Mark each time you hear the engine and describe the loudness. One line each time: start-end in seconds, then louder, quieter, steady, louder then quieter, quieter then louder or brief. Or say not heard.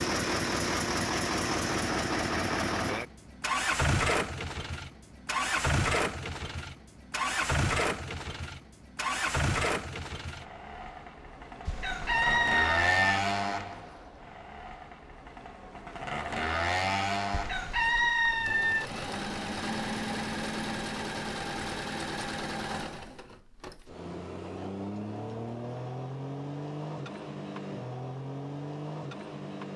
0.0-29.7 quieter.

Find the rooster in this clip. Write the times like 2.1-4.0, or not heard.
11.7-13.2, 17.3-18.9.